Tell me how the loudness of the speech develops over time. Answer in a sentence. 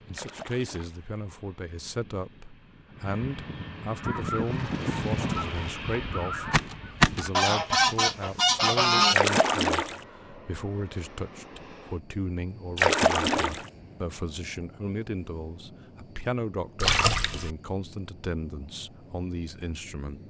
The loudness of the speech stays about the same.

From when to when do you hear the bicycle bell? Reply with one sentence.
The bicycle bell can't be heard in this clip.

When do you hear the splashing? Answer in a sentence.
The splashing can be heard from 0.1 to 1.1 s, from 4.3 to 5.7 s, from 9.1 to 10.0 s, from 12.8 to 13.7 s and from 16.8 to 17.5 s.